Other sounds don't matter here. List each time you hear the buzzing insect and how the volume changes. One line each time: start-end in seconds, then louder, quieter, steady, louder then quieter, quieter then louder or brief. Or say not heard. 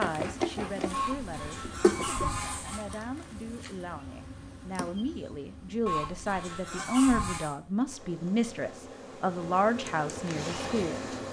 0.0-11.2 quieter then louder.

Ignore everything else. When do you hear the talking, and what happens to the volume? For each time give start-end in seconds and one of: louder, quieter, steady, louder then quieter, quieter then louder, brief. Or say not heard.
0.0-11.1 louder.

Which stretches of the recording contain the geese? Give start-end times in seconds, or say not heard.
0.9-3.0, 5.8-7.5.